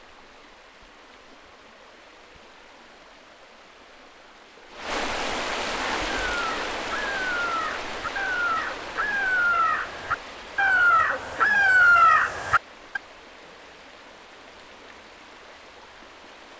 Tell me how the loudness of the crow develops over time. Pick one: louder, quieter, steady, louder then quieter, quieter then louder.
louder.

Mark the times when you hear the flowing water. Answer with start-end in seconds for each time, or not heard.
0.0-16.5.